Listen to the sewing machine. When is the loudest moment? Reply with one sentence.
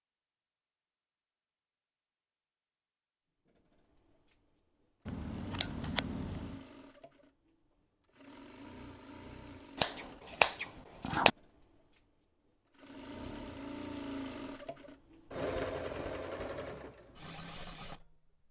The loudest moment of the sewing machine is at 16 seconds.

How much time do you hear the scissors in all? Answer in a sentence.
You can hear the scissors for 3 seconds altogether.